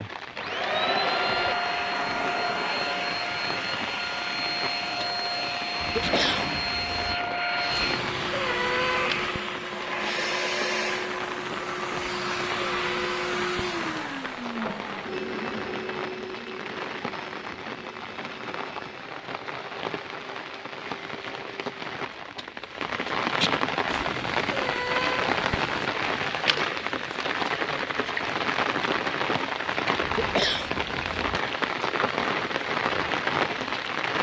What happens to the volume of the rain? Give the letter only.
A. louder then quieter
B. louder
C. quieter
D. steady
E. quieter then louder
B.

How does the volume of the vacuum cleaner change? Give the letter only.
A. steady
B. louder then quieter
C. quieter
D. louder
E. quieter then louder
C.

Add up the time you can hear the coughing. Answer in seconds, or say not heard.
3 s.